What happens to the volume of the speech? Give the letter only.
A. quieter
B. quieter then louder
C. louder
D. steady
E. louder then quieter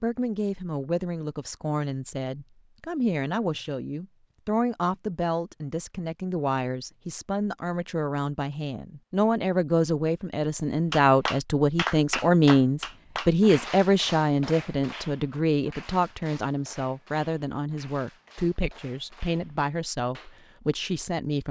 E.